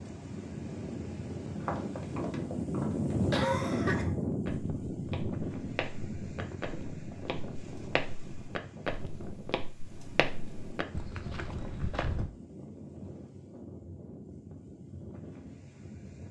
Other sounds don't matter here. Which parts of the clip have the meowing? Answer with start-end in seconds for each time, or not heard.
not heard.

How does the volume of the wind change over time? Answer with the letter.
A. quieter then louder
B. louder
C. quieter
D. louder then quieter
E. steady
C.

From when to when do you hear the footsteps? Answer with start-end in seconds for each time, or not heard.
1.6-12.3.